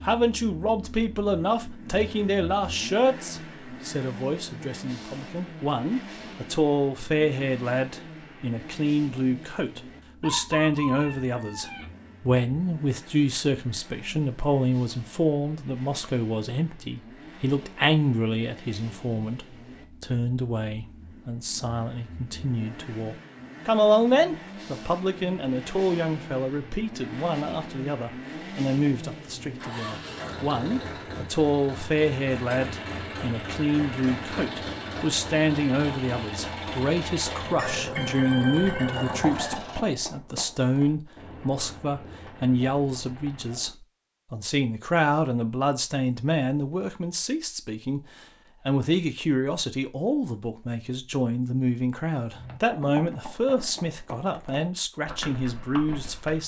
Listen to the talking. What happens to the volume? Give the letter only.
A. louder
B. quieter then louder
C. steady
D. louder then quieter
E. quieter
C.